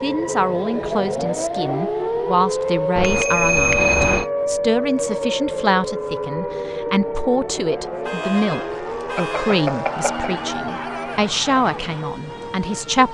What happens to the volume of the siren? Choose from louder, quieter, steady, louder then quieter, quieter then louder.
quieter.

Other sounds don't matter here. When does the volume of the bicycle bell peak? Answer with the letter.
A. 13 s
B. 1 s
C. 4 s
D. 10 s
C.